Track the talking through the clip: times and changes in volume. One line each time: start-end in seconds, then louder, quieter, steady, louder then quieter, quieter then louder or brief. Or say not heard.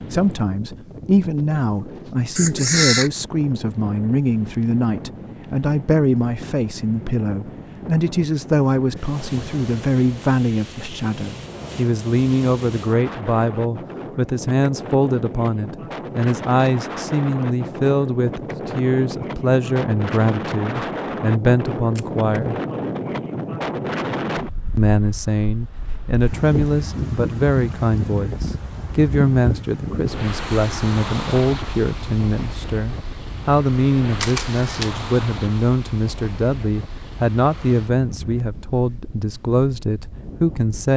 0.1-22.6 steady
24.8-40.9 steady.